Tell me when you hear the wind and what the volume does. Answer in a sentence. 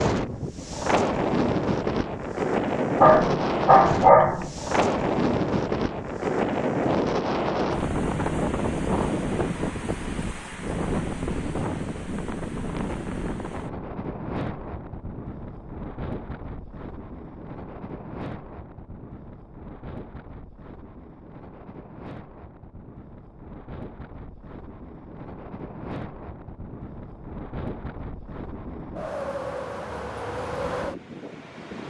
The wind can be heard from 0.0 to 31.8 s, getting quieter then louder.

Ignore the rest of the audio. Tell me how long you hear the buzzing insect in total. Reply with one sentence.
The buzzing insect can't be heard in this clip.